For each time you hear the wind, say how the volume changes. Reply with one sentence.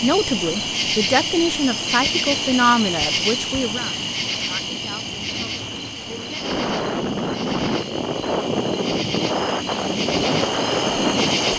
The wind can be heard from 0.0 to 11.5 s, getting louder.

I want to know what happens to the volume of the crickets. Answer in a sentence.
The loudness of the crickets goes down, then up.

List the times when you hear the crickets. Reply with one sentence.
The crickets can be heard from 0.0 to 11.5 s.